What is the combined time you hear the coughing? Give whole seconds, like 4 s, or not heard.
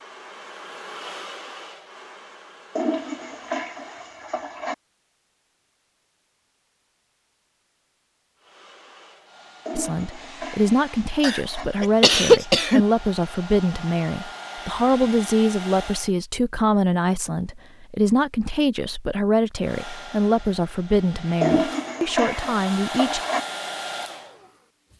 2 s.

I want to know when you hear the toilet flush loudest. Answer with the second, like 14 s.
22 s.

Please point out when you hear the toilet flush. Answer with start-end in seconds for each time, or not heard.
2.8-4.8, 9.7-11.7, 21.4-23.4.